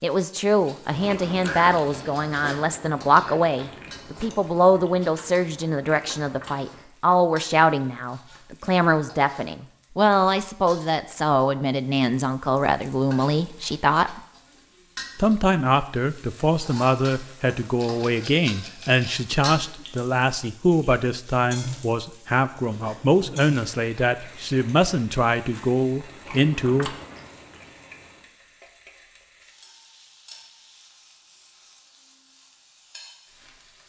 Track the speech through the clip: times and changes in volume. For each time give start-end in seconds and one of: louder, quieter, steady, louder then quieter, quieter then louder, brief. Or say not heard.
0.0-14.2 steady
15.2-26.9 steady.